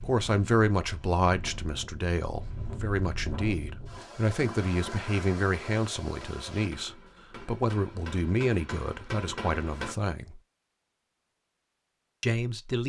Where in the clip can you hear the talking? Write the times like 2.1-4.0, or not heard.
0.0-10.4, 12.2-12.8.